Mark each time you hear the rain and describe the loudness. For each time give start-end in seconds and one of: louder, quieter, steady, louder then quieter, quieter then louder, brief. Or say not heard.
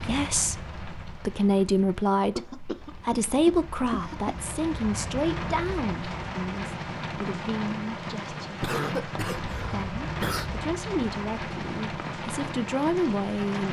0.0-13.6 louder.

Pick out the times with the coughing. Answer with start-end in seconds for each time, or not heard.
2.4-4.3, 8.6-10.5.